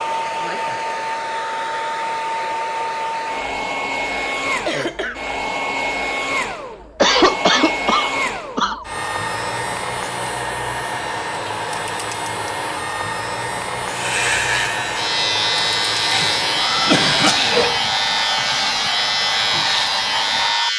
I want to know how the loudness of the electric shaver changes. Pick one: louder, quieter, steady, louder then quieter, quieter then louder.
steady.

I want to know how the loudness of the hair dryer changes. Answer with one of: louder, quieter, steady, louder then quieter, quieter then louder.
steady.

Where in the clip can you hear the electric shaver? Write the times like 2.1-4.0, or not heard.
13.8-20.7.